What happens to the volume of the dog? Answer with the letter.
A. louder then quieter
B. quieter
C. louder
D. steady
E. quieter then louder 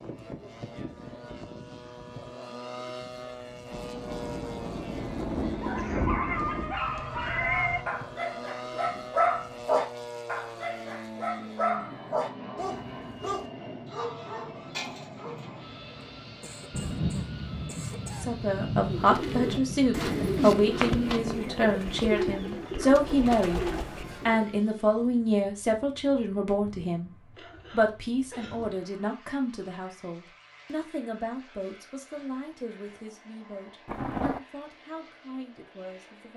B.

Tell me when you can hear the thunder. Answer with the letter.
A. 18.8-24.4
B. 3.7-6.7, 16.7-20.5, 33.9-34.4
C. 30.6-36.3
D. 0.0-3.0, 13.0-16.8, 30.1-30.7
B.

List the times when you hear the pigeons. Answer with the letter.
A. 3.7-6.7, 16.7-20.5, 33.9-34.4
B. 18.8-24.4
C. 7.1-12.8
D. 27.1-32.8
B.